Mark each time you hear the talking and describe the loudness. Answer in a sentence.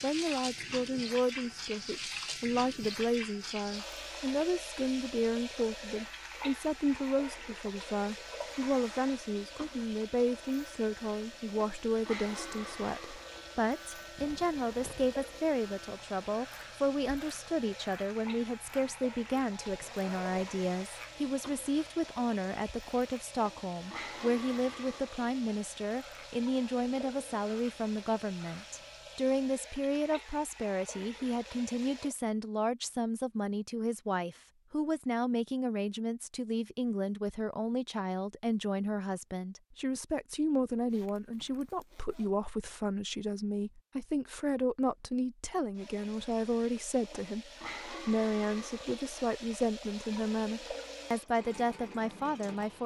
The talking can be heard from 0.0 to 52.8 s, at a steady volume.